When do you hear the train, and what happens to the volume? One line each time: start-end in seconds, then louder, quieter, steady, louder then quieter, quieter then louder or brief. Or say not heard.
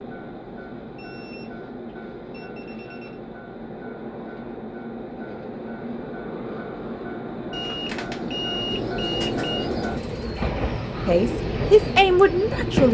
0.0-12.9 louder.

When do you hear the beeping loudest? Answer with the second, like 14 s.
9 s.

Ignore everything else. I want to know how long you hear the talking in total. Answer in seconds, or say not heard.
2 s.